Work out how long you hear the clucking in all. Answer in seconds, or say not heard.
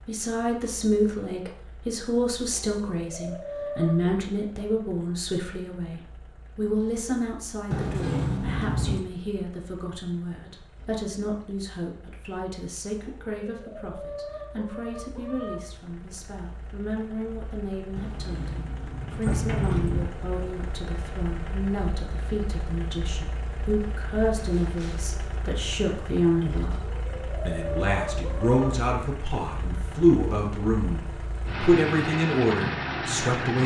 6 s.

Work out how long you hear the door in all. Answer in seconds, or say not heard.
4 s.